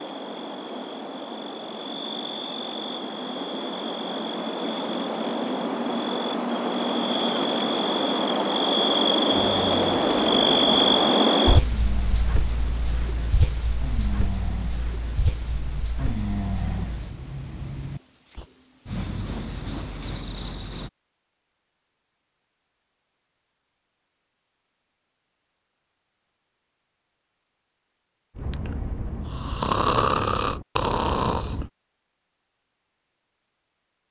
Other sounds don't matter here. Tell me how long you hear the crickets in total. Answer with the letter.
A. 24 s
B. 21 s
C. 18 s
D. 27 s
B.